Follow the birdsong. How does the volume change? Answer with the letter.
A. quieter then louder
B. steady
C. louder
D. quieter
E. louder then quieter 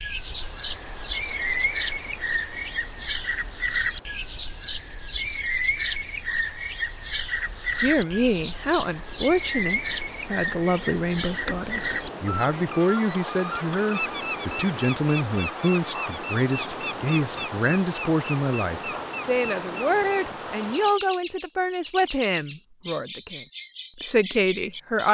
D.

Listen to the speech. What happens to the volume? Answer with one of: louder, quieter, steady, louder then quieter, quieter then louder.
steady.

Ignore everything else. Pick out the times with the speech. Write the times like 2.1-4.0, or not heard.
7.8-25.1.